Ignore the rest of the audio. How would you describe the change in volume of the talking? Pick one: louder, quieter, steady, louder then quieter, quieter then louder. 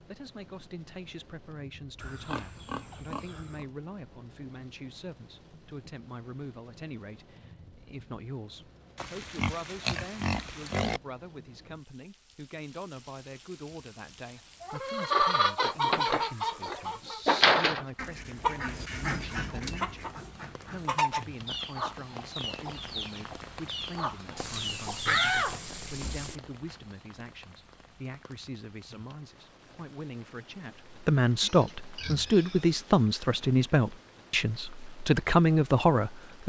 louder.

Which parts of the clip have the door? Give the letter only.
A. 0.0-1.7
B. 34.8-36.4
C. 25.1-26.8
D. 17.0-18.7
C.